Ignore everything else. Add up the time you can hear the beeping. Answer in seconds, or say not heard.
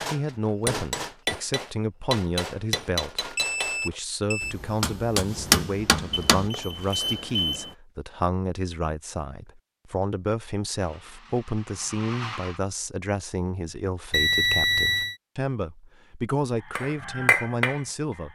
4 s.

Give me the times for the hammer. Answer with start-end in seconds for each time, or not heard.
0.0-6.5, 16.6-18.3.